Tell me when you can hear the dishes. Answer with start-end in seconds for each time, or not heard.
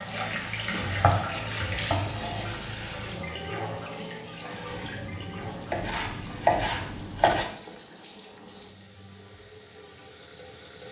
not heard.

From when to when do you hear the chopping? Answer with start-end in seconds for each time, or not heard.
0.8-2.5, 5.7-7.5.